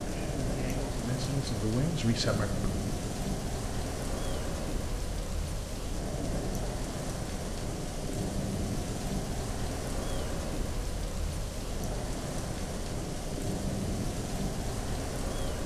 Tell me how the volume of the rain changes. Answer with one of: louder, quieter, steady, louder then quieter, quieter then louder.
steady.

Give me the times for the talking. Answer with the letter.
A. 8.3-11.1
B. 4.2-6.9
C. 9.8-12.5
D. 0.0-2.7
D.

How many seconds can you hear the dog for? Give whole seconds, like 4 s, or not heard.
not heard.